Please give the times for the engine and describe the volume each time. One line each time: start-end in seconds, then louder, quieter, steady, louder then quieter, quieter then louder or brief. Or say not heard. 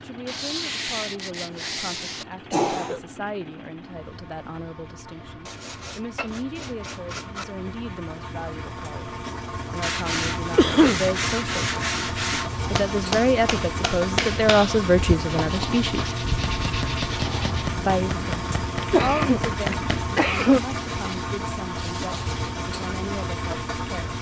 0.0-24.1 louder.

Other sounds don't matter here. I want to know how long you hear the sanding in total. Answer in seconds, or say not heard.
11 s.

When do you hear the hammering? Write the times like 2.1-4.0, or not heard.
12.6-20.2.